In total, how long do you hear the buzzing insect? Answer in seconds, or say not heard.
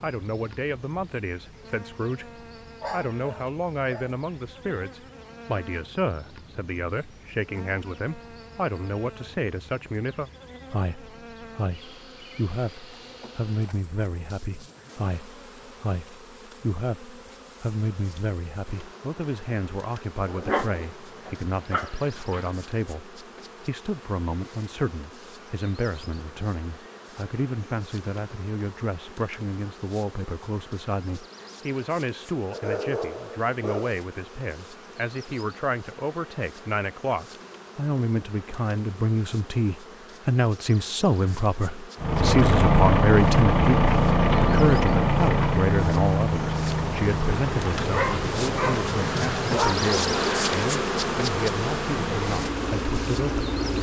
54 s.